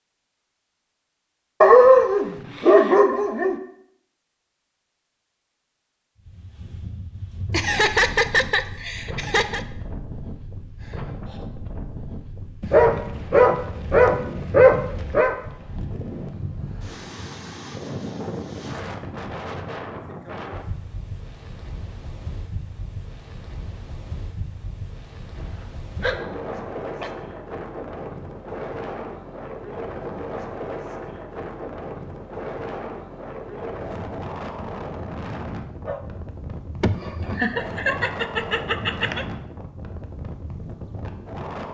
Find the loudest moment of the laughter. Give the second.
8 s.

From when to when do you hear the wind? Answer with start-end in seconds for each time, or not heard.
6.2-41.6.